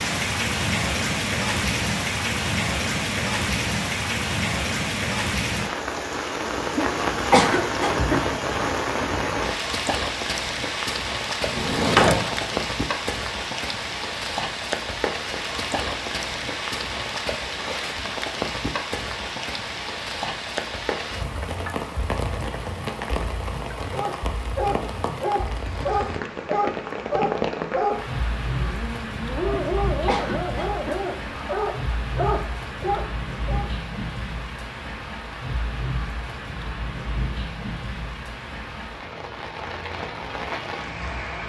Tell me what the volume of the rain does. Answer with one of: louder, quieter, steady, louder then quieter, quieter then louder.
quieter.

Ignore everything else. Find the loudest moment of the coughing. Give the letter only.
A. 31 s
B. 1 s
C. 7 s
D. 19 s
C.